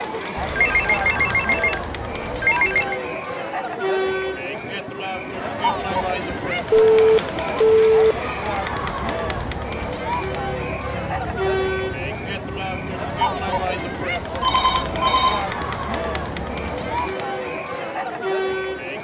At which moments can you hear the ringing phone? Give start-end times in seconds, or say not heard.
0.3-3.0, 6.7-8.0, 14.4-15.4.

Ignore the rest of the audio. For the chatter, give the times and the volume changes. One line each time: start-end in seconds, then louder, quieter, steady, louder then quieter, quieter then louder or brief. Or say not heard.
0.0-18.9 steady.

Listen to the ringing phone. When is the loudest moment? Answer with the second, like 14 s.
7 s.